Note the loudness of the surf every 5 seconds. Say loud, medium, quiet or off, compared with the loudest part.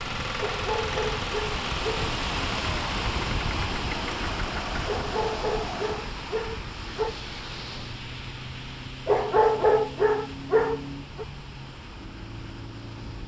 loud, medium, quiet.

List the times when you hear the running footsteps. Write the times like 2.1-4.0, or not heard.
not heard.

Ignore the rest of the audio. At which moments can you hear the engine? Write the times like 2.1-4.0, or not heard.
0.0-13.2.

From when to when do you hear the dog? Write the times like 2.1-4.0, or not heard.
0.3-2.1, 4.8-7.2, 9.1-11.2.